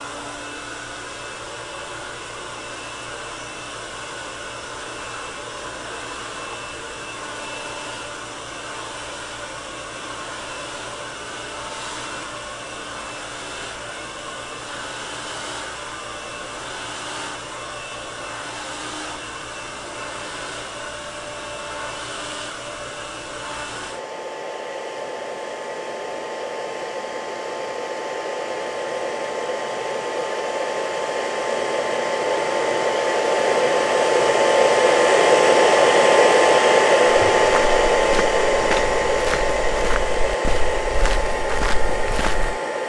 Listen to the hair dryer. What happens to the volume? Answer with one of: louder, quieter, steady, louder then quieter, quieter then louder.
louder.